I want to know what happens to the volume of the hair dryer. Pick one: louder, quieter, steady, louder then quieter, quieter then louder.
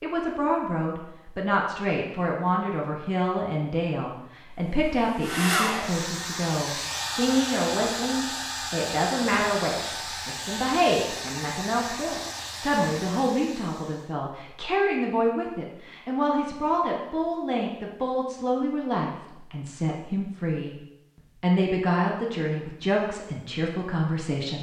quieter.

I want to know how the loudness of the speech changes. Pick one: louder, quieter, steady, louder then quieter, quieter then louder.
steady.